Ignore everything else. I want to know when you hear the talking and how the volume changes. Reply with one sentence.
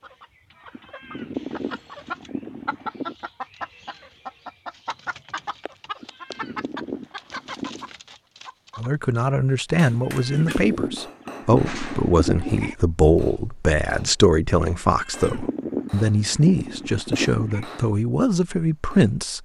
The talking can be heard from 8.8 to 19.4 s, at a steady volume.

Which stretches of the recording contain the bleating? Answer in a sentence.
You can hear the bleating from 0.7 to 3.1 s, from 6.0 to 7.9 s, from 9.9 to 12.8 s and from 14.8 to 17.6 s.